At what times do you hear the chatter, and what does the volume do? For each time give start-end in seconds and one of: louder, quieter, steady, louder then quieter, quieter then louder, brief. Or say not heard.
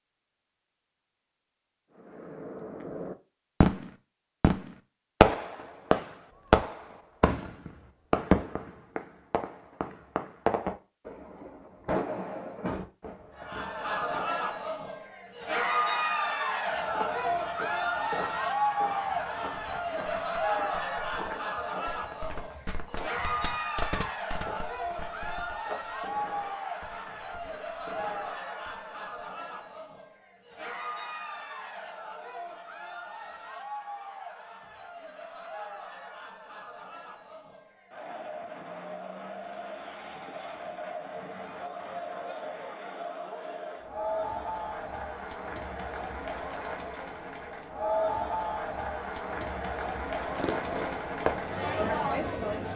13.3-52.7 quieter then louder.